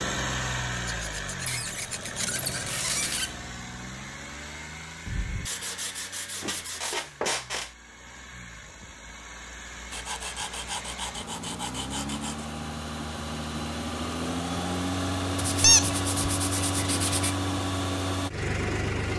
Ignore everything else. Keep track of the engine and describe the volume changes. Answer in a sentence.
The loudness of the engine goes down, then up.